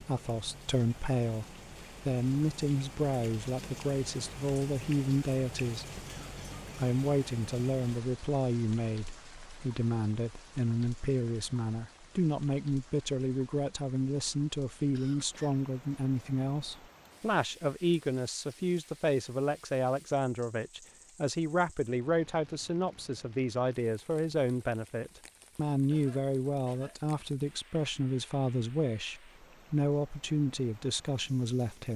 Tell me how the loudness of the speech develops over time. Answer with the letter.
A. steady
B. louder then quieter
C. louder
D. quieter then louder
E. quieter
A.